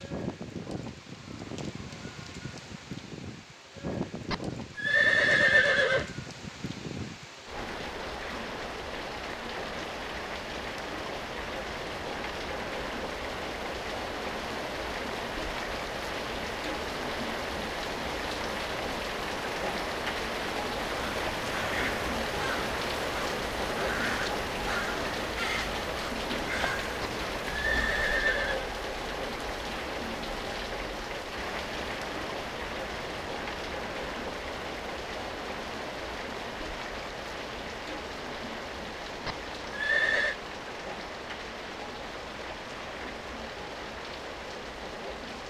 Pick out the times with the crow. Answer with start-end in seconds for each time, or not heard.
20.9-27.9.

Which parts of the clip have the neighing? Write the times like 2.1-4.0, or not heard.
4.3-6.2, 27.0-28.7, 39.2-40.4.